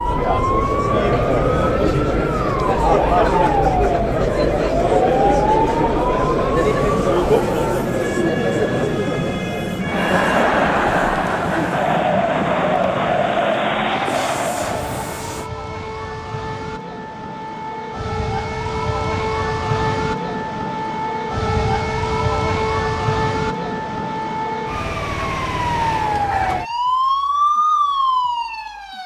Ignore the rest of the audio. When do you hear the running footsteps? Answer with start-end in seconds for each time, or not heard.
not heard.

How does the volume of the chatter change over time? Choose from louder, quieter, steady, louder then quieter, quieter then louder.
steady.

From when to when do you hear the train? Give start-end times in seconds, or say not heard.
6.6-15.5.